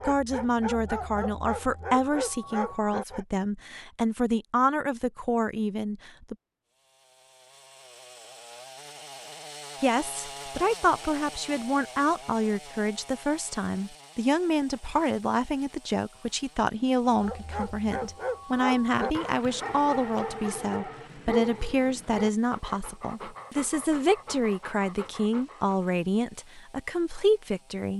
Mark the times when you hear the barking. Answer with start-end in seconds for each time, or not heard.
0.0-3.2, 17.1-25.9.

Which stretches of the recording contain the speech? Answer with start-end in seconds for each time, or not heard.
0.1-6.3, 9.8-27.9.